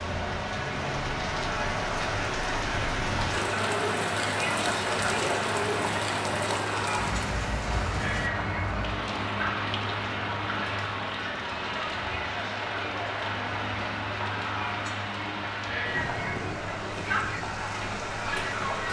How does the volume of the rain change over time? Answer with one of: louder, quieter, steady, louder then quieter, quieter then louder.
quieter.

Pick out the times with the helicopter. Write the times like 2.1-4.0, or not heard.
0.0-18.8.